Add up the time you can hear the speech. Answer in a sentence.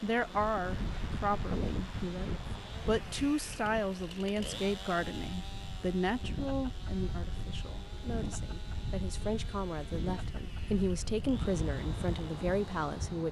You can hear the speech for 13 seconds altogether.